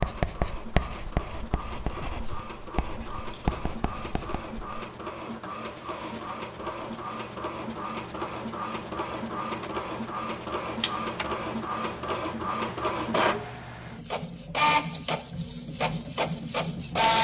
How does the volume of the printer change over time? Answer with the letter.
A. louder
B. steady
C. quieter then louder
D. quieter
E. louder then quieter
A.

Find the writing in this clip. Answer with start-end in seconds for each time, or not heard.
0.0-4.8.